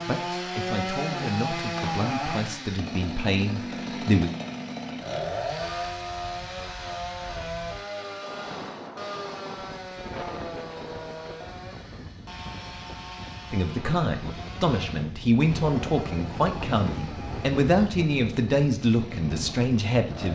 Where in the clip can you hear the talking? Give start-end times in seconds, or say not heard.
0.1-4.3, 13.5-20.3.